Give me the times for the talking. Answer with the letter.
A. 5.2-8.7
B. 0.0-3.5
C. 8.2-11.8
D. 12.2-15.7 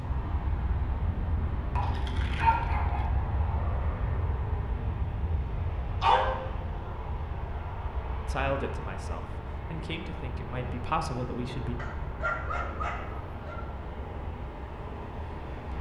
C.